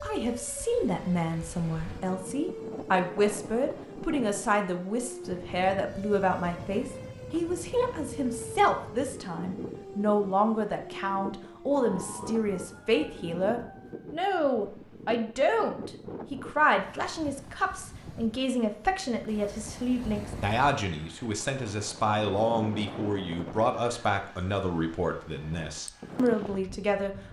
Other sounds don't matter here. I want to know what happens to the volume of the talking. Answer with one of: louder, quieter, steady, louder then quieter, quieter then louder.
steady.